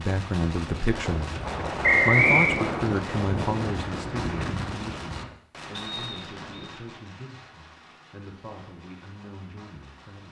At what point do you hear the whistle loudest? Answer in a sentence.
The volume of the whistle peaks at 2 seconds.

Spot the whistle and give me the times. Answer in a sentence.
The whistle can be heard from 1.8 to 2.6 s and from 5.7 to 6.7 s.